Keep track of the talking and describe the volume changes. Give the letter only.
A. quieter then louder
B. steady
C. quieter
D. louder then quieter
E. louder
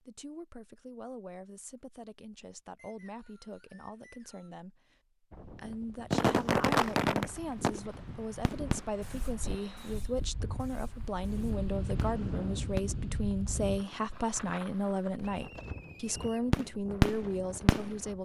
E.